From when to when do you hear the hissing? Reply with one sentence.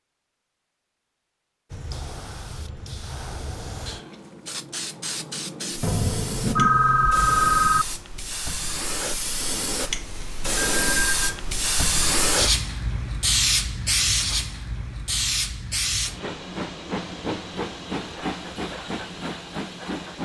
The hissing can be heard from 1.7 to 20.1 s.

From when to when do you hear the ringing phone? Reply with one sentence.
The ringing phone can be heard from 5.8 to 7.8 s and from 10.6 to 11.4 s.